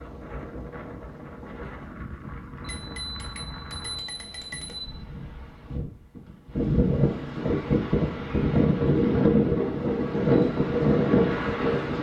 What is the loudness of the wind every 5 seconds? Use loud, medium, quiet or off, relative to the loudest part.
quiet, loud, loud.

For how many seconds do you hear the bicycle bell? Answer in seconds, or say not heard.
2 s.